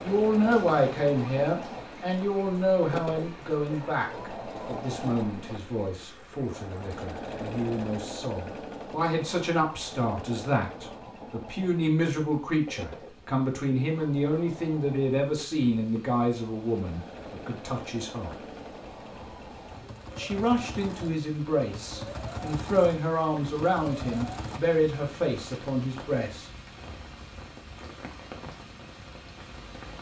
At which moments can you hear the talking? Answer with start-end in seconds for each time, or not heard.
0.0-18.4, 20.1-26.4.